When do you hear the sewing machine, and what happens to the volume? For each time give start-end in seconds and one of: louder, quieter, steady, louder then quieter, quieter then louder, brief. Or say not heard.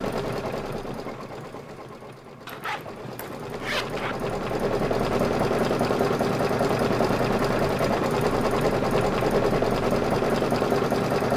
0.0-11.3 louder.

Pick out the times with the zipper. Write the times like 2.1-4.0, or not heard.
2.5-4.2.